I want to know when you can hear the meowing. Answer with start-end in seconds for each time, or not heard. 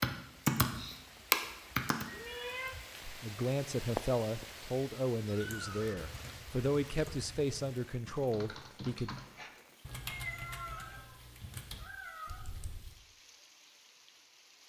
2.0-2.7, 5.2-7.1, 10.0-12.6.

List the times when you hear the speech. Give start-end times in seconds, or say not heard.
3.0-9.2.